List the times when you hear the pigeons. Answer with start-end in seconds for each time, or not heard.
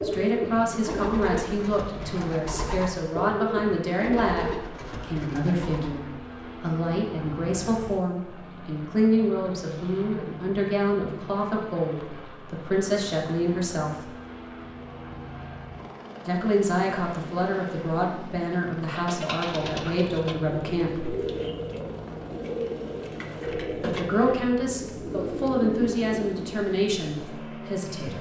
0.0-6.0, 18.9-26.6.